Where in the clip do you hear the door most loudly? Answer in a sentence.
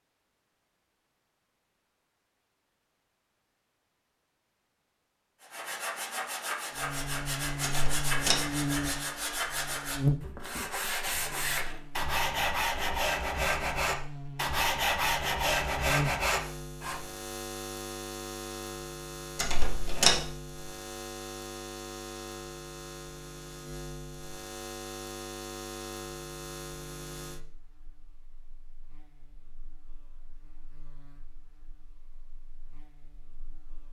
The loudest moment of the door is at 20 seconds.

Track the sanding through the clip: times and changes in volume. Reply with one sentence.
You can hear the sanding from 5.4 to 17.0 s, getting louder.